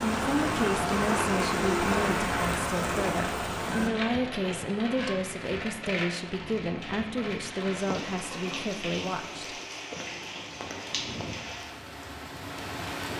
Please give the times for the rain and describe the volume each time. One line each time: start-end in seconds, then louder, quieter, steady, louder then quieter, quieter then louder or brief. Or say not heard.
0.0-13.1 quieter.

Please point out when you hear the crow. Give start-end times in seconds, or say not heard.
not heard.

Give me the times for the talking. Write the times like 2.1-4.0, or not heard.
0.0-9.6.